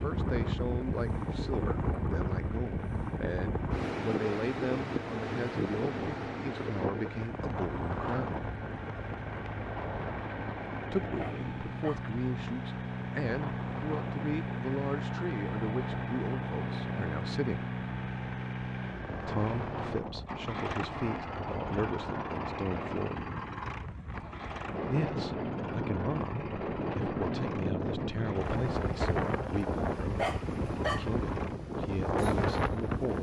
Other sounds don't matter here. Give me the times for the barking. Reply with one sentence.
The barking can be heard from 11.2 to 12.1 s and from 30.1 to 31.1 s.